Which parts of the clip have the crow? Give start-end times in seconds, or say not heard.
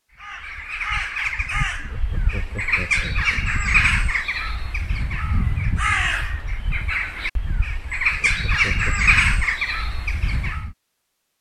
0.1-10.8.